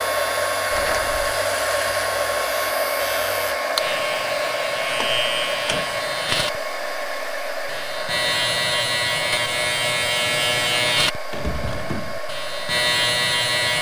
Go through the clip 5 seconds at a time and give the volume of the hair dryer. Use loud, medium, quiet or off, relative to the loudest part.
loud, medium, medium.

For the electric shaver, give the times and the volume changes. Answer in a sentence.
The electric shaver can be heard from 0.0 to 13.7 s, getting louder.